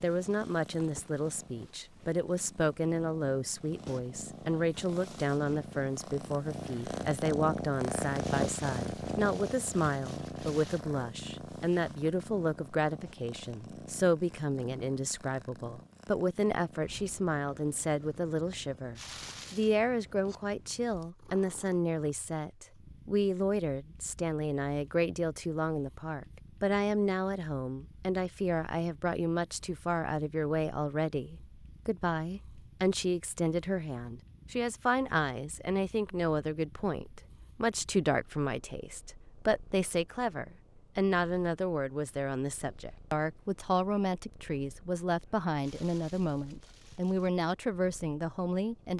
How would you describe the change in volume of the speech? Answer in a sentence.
The volume of the speech stays about the same.